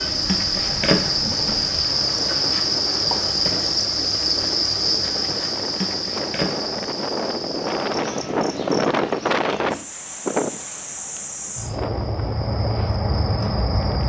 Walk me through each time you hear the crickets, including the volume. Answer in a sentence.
You can hear the crickets from 0.0 to 14.0 s, getting quieter then louder.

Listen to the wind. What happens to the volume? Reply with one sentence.
The volume of the wind goes up, then down.